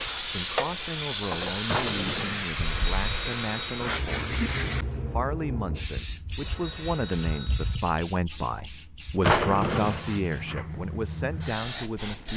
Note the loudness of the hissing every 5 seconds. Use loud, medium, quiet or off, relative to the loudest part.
loud, medium, medium.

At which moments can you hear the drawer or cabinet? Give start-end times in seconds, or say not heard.
1.6-2.5, 9.2-10.1.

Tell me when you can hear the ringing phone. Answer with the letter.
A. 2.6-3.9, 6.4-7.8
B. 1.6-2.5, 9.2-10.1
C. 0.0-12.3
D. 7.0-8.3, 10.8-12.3
A.